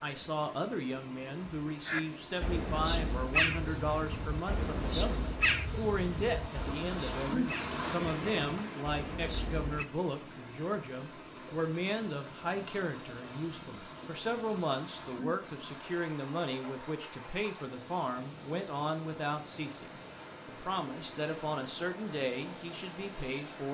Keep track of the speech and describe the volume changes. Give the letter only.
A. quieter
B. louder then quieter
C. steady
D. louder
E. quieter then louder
C.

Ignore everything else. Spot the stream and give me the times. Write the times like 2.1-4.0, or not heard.
0.0-23.6.